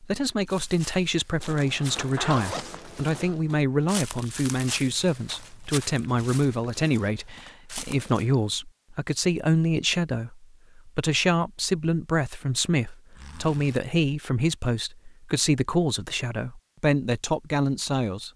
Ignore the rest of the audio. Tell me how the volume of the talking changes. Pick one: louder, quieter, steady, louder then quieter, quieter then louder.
steady.